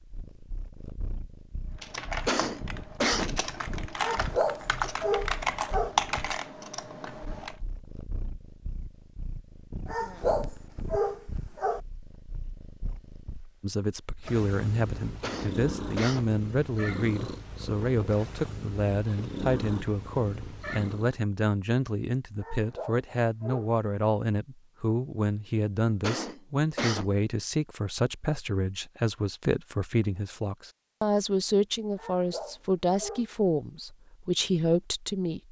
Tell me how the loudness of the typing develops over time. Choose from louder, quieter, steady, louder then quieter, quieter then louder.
louder then quieter.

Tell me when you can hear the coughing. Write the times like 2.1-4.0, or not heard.
2.2-3.4, 15.2-16.4, 26.0-27.1.